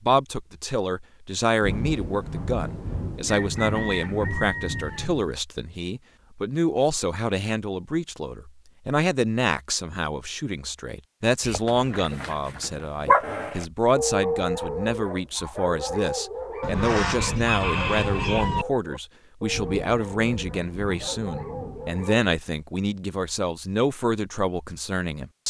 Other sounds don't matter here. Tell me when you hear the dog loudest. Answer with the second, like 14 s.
13 s.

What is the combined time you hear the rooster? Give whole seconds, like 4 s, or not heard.
4 s.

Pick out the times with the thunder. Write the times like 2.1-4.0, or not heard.
1.6-5.2, 19.5-22.0.